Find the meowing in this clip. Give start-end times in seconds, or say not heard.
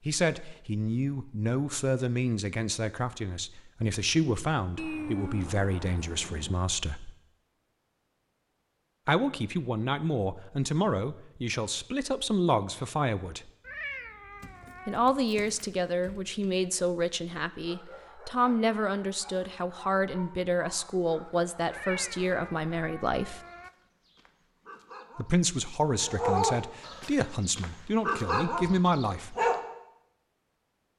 4.8-6.6, 13.6-15.0, 21.7-23.7.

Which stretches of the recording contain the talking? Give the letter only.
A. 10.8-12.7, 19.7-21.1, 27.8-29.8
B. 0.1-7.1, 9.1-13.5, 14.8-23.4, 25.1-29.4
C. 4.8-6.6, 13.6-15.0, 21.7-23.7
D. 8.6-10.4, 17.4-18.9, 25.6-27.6
B.